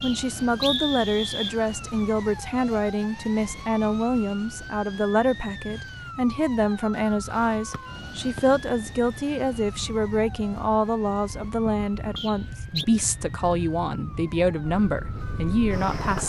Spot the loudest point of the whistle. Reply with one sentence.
The volume of the whistle peaks at 1 second.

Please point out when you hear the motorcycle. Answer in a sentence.
The motorcycle can be heard from 14.6 to 16.2 s.